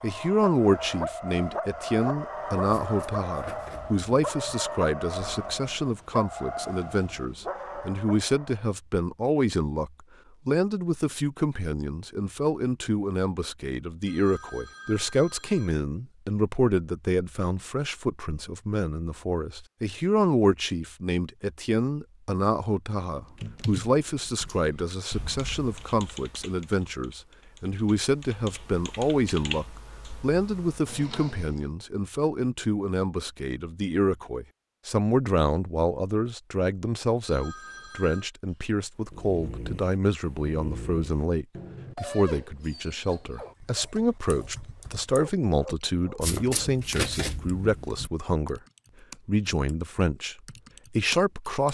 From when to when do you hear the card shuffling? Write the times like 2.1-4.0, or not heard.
2.6-4.5, 46.2-48.1.